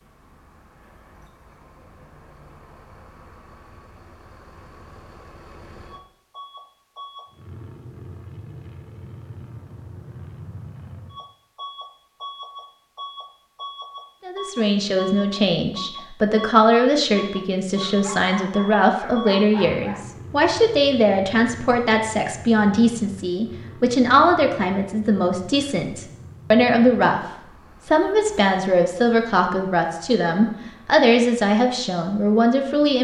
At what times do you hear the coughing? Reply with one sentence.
The coughing can't be heard in this clip.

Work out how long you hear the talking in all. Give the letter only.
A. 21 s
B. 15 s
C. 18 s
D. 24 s
C.